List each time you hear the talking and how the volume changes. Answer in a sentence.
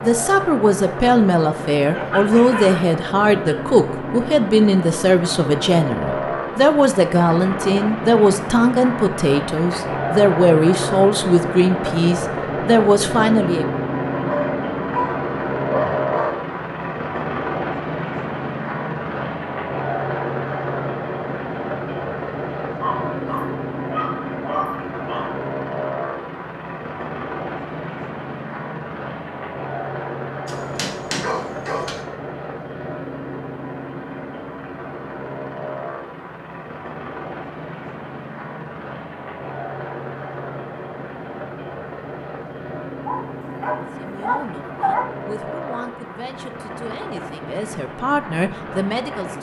The talking can be heard from 0.0 to 13.7 s, at a steady volume; and from 44.0 to 49.3 s, getting louder.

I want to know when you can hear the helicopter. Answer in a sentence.
The helicopter can be heard from 0.0 to 49.3 s.